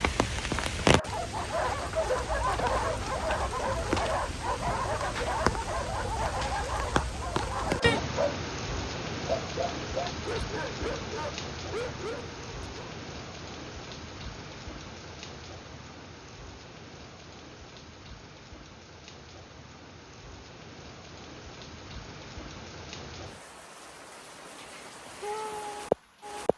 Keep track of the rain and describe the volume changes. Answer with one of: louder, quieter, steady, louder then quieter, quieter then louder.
quieter then louder.